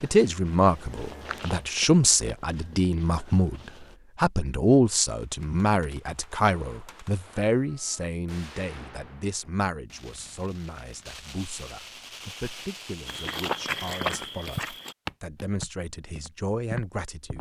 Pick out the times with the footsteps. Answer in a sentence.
The footsteps can be heard from 0.0 to 4.0 s and from 13.1 to 17.3 s.